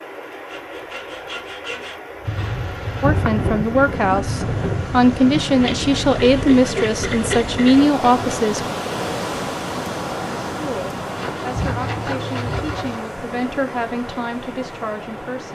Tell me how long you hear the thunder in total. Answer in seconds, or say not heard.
4 s.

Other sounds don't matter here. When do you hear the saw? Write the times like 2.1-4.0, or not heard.
0.3-2.5, 5.6-8.4, 11.2-13.1.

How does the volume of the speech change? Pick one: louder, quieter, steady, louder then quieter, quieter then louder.
quieter.